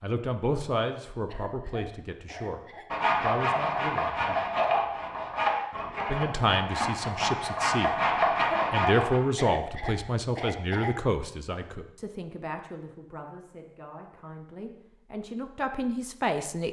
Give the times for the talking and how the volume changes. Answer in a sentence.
You can hear the talking briefly from 0.0 to 2.6 s; briefly from 3.2 to 4.4 s; briefly from 6.0 to 7.9 s; and from 8.7 to 16.6 s, getting quieter then louder.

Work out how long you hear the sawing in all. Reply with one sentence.
You can hear the sawing for 6 seconds altogether.